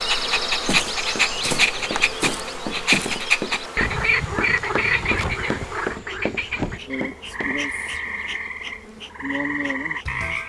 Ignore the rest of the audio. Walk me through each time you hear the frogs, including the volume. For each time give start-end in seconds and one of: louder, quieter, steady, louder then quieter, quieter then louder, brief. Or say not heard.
0.0-10.4 quieter.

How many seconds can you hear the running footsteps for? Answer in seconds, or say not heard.
7 s.